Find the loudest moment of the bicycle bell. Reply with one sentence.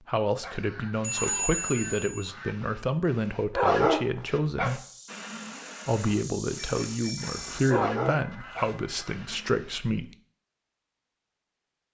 The volume of the bicycle bell peaks at 1 second.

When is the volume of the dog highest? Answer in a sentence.
The volume of the dog peaks at 4 seconds.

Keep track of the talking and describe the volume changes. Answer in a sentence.
The volume of the talking stays about the same.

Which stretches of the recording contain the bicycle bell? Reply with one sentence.
You can hear the bicycle bell from 1.0 to 2.3 s and from 6.5 to 7.6 s.